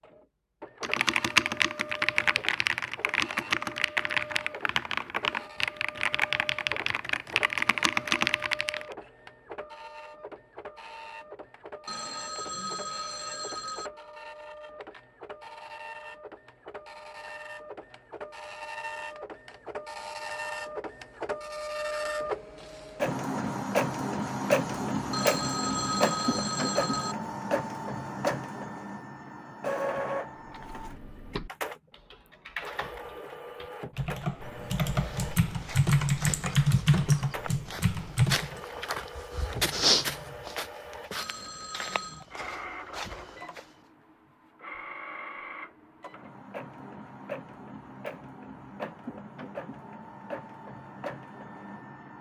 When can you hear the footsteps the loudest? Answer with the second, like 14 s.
40 s.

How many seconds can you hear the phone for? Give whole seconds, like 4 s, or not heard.
5 s.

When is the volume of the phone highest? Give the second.
26 s.